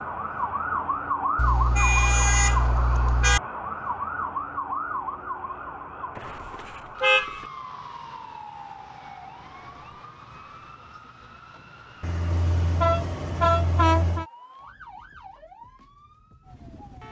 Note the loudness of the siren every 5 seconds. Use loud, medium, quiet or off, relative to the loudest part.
loud, medium, quiet, quiet.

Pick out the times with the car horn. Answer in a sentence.
The car horn can be heard from 1.4 to 3.4 s, from 6.2 to 7.5 s and from 12.0 to 14.2 s.